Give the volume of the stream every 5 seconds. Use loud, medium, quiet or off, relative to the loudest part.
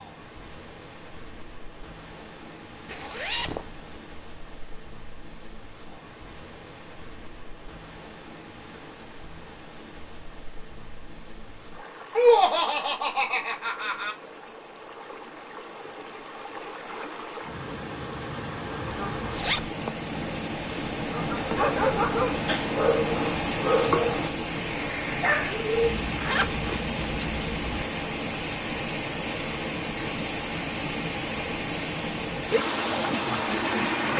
quiet, quiet, quiet, medium, loud, loud, loud.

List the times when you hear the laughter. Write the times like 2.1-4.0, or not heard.
12.2-14.2.